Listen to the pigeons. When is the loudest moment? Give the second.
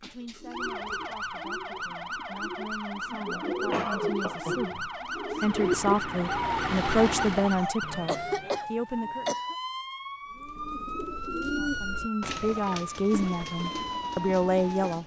6 s.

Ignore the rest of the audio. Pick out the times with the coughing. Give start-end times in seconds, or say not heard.
3.7-4.7, 8.1-9.6.